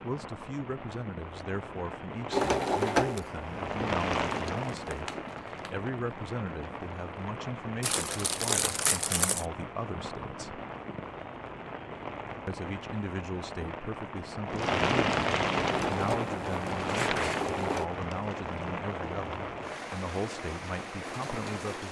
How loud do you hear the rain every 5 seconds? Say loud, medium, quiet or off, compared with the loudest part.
loud, medium, loud, loud, medium.